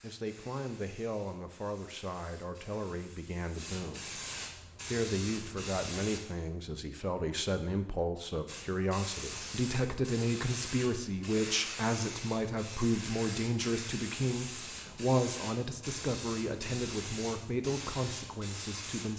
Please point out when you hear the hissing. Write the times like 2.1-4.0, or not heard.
0.0-6.2, 8.4-19.1.